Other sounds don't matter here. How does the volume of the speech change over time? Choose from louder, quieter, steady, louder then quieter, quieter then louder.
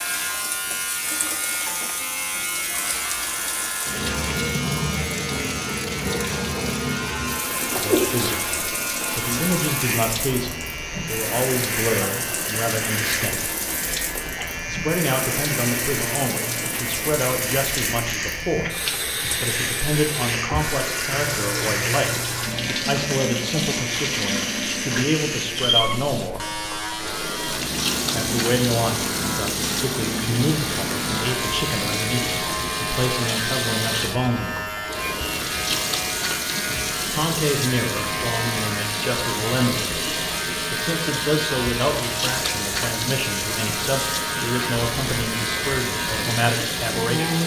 steady.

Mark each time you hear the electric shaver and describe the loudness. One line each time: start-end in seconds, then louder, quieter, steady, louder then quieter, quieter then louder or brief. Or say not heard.
0.0-47.4 steady.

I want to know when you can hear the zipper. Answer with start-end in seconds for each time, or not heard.
21.1-22.7.